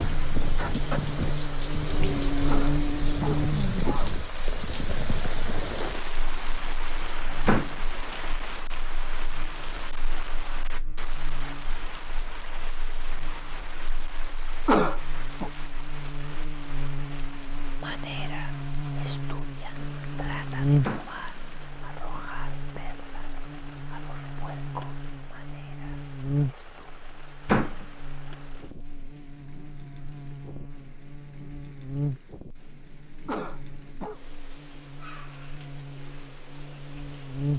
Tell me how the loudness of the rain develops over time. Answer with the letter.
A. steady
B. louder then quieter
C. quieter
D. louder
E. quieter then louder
C.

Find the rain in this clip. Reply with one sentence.
You can hear the rain from 0.0 to 37.5 s.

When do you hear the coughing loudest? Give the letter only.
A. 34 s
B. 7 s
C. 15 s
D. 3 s
C.